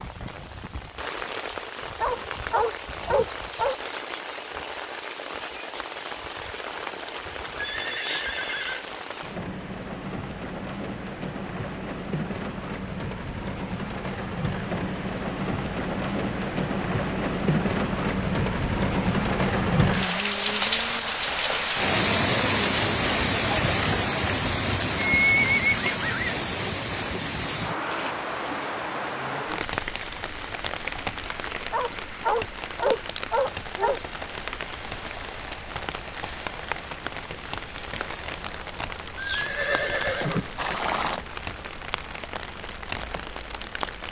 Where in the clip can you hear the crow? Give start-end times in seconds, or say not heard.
not heard.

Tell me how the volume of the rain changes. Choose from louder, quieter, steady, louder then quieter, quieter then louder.
louder then quieter.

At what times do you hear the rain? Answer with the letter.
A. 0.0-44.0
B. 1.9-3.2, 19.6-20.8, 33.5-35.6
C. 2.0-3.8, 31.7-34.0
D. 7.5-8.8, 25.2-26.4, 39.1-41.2
A.